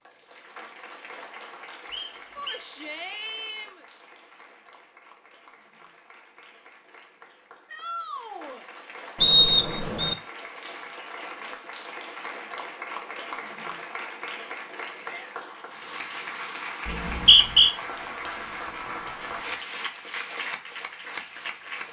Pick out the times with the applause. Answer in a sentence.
You can hear the applause from 0.0 to 21.8 s.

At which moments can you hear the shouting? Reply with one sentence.
You can hear the shouting from 2.4 to 3.9 s, from 7.7 to 8.7 s and from 14.9 to 15.8 s.